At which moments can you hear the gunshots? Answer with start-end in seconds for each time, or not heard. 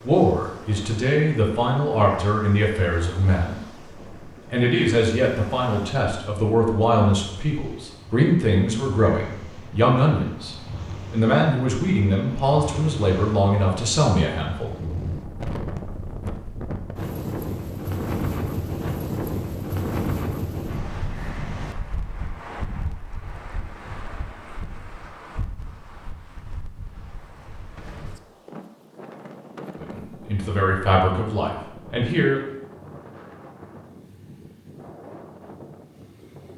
27.8-28.2.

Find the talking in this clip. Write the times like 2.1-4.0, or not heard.
0.0-3.6, 4.5-14.7, 29.8-32.4.